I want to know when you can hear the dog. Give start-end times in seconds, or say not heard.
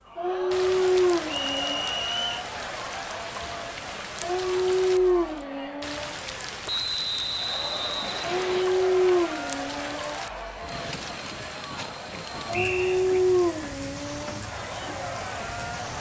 0.1-1.9, 4.2-6.2, 8.2-10.2, 12.4-14.4.